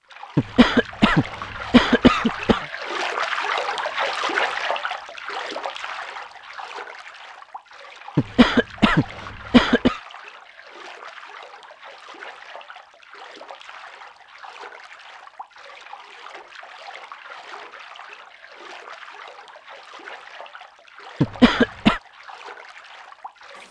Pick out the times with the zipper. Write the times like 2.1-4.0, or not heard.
not heard.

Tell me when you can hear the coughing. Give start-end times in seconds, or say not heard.
0.3-2.6, 8.2-10.0, 21.2-22.0.